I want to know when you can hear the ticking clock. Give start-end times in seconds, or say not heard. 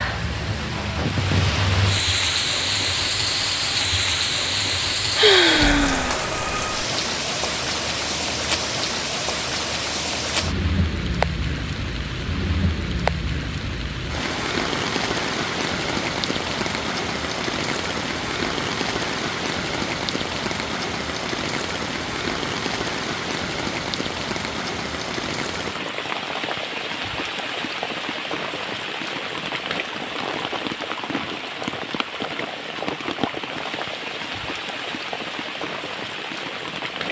not heard.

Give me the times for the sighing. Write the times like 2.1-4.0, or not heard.
5.2-6.2.